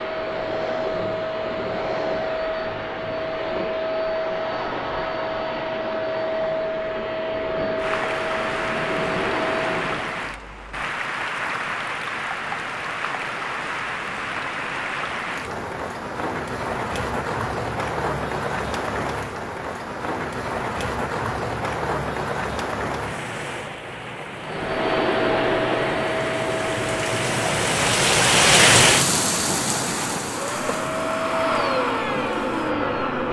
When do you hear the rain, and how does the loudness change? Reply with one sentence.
The rain can be heard from 7.8 to 33.2 s, getting louder.